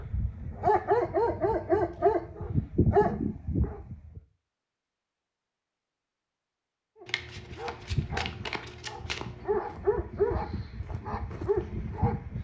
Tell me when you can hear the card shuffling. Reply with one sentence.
You can hear the card shuffling from 7.0 to 9.5 s.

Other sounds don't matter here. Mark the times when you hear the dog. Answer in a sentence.
You can hear the dog from 0.0 to 4.2 s and from 7.0 to 12.3 s.